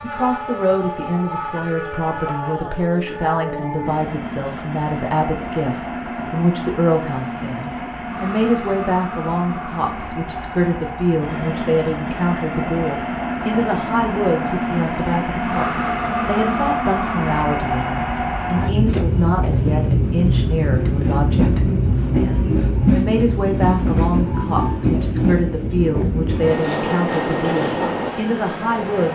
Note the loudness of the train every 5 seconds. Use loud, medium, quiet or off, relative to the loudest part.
medium, medium, medium, loud, loud, loud.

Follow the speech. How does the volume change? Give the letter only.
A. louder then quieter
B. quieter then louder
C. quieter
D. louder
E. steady
E.